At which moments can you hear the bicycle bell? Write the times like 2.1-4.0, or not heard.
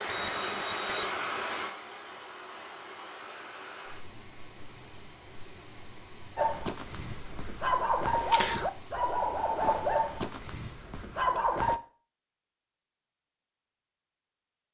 0.1-1.1, 11.3-12.0.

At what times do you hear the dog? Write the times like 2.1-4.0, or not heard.
6.3-11.8.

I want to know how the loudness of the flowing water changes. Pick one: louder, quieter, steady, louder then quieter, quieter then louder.
quieter.